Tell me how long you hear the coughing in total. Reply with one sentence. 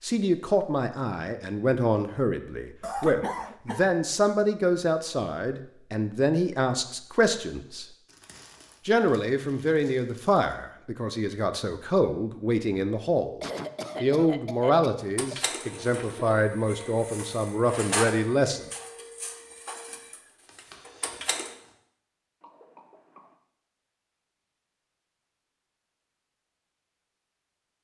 The coughing can be heard for 4 seconds in total.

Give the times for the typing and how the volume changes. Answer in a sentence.
The typing can't be heard in this clip.